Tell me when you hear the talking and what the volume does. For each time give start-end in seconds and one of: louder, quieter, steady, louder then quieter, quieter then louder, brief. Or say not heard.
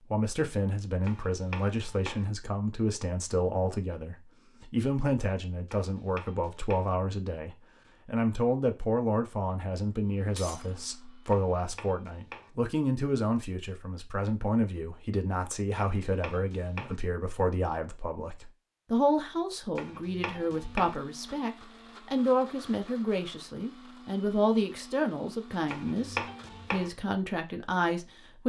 0.1-28.4 steady.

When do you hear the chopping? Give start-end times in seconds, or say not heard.
1.0-2.2, 5.7-6.9, 11.3-12.5, 15.8-17.0, 19.8-21.0, 25.6-26.9.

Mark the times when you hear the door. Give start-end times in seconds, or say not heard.
not heard.